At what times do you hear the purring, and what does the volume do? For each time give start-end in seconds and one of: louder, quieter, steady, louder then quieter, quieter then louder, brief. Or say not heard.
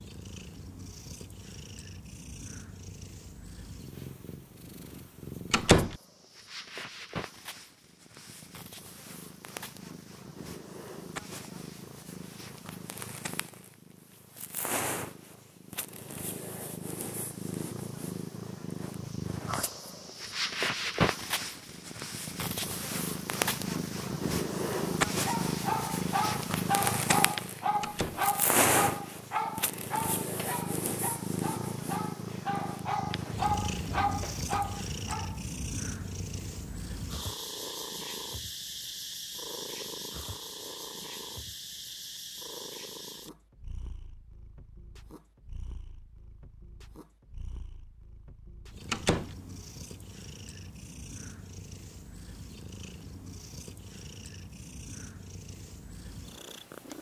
0.0-56.9 louder then quieter.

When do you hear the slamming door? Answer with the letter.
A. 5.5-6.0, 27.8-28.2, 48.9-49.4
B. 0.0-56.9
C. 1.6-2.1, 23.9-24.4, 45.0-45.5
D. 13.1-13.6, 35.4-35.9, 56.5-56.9
A.